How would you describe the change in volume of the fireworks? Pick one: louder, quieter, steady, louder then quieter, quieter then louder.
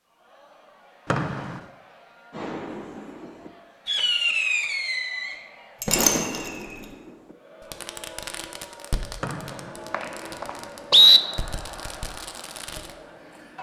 quieter.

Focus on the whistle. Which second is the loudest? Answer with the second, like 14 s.
11 s.